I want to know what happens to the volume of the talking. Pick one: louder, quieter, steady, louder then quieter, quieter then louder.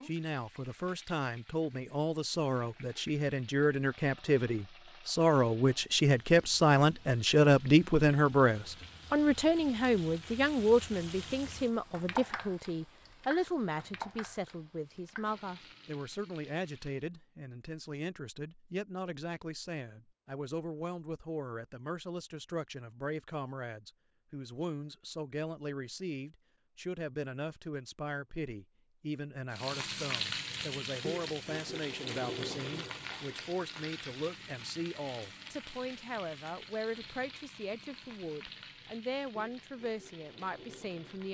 quieter.